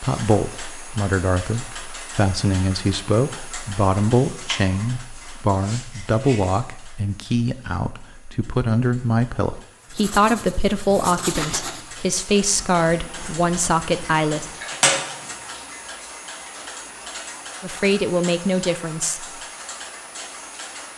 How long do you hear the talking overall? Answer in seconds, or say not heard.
16 s.